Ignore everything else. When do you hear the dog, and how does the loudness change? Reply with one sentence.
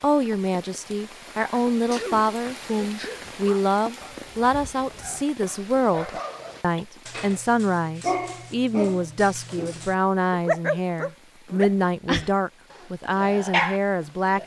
The dog can be heard from 3.4 to 14.4 s, getting louder.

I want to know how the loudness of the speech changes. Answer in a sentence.
The loudness of the speech stays about the same.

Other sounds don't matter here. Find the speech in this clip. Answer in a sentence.
The speech can be heard from 0.0 to 14.4 s.